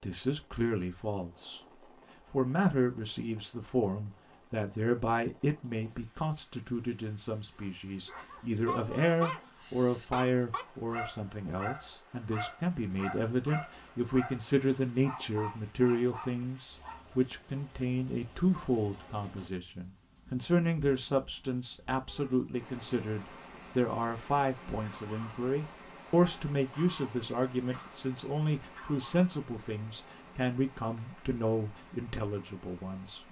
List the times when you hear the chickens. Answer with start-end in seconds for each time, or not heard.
not heard.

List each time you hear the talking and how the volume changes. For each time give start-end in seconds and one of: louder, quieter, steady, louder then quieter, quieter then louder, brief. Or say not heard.
0.0-33.2 steady.